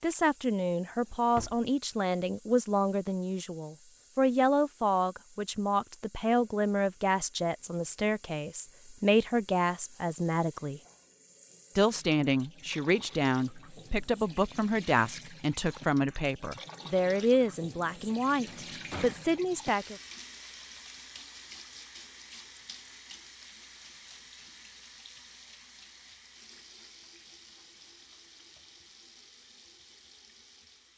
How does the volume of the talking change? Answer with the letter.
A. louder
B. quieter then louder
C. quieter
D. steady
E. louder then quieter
D.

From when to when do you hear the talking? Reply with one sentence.
You can hear the talking from 0.0 to 10.8 s and from 11.8 to 19.9 s.